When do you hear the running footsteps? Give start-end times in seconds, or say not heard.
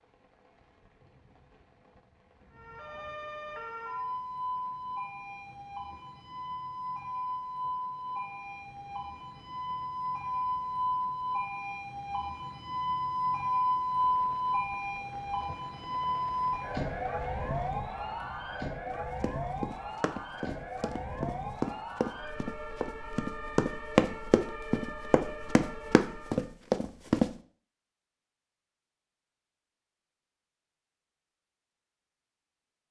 18.9-27.3.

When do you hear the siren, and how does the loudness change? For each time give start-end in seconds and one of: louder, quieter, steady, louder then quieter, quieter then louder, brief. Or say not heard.
2.5-26.5 louder then quieter.